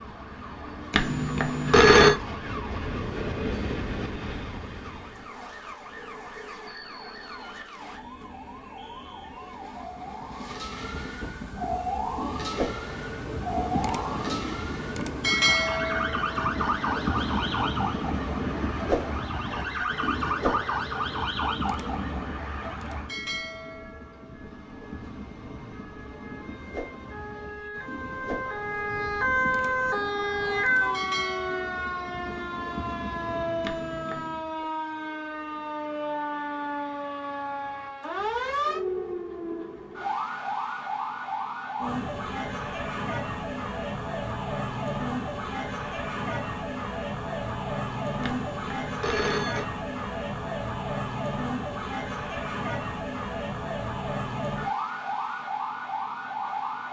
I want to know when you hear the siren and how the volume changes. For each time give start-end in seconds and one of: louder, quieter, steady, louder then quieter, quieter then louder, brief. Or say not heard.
0.0-56.8 louder.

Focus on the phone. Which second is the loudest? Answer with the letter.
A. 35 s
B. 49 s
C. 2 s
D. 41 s
C.